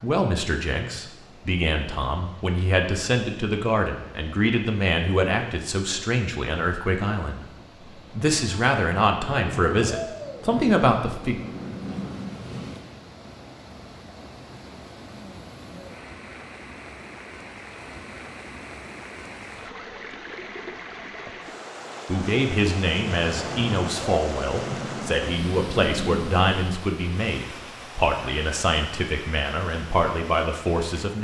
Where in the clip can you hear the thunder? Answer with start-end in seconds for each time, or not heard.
9.1-12.9, 23.1-26.6.